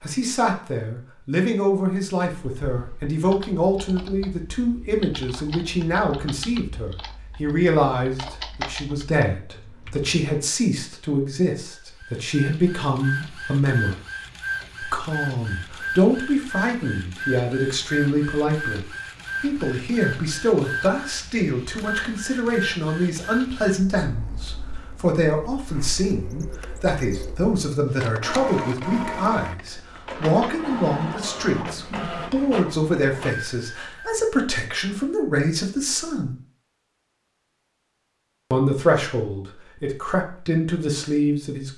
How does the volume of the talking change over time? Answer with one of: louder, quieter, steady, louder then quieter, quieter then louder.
steady.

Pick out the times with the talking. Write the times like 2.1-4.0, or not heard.
0.0-14.0, 14.8-36.4, 38.5-41.7.